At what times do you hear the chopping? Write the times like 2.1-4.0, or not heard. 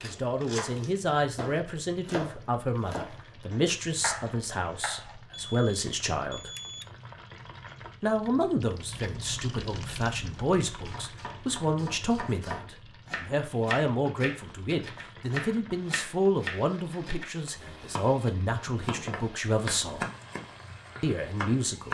0.0-5.2, 10.8-21.9.